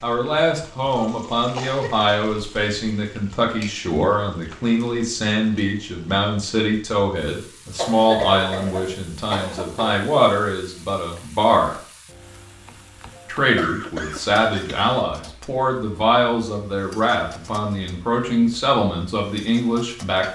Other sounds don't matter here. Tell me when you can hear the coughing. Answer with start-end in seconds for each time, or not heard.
0.9-2.1, 7.8-10.1, 13.6-14.9.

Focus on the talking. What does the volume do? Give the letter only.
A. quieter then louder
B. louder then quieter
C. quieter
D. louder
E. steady
E.